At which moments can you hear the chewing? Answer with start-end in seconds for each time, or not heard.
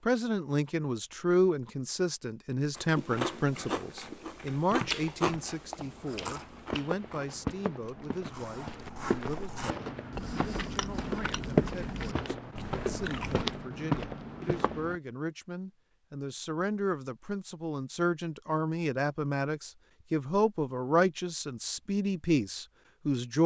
2.8-13.4.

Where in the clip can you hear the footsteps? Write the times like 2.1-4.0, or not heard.
4.5-15.0.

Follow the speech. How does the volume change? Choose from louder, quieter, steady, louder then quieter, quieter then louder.
quieter then louder.